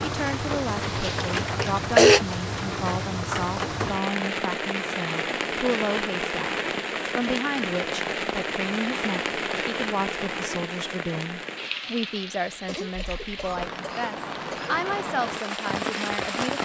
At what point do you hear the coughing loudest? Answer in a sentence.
The volume of the coughing peaks at 2 seconds.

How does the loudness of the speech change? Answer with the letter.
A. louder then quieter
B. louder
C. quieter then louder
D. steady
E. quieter
D.